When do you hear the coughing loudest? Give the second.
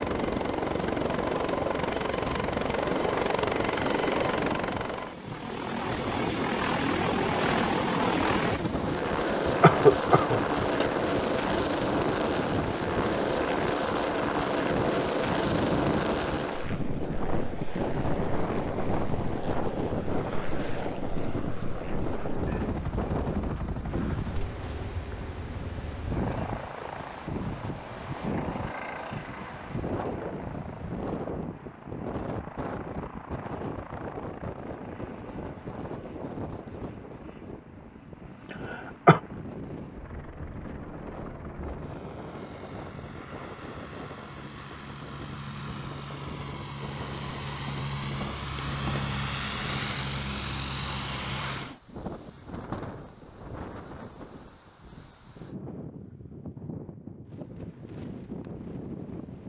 10 s.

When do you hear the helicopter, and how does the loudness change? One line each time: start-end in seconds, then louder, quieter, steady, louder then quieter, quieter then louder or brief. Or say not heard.
0.0-51.8 quieter then louder.